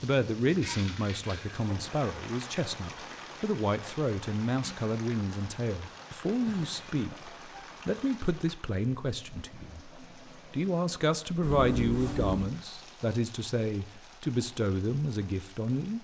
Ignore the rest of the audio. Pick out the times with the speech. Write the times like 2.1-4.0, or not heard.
0.0-15.9.